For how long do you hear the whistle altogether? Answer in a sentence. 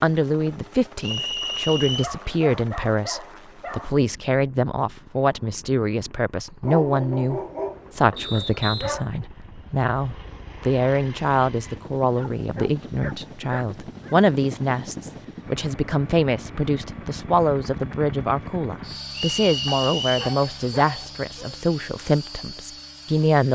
You can hear the whistle for 3 seconds altogether.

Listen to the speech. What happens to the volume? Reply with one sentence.
The volume of the speech stays about the same.